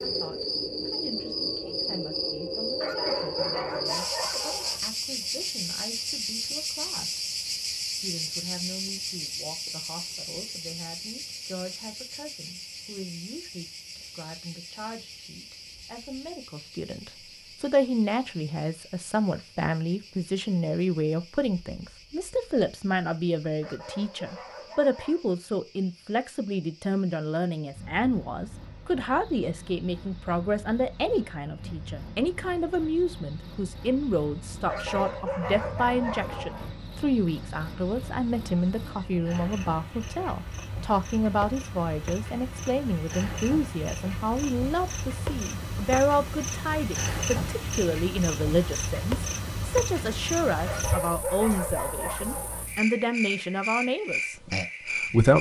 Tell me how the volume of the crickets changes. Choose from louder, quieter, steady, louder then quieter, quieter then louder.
quieter then louder.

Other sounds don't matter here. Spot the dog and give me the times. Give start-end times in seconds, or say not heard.
2.8-4.8, 23.6-25.2, 34.6-36.7, 50.6-52.6.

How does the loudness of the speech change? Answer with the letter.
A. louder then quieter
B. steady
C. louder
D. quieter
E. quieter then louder
C.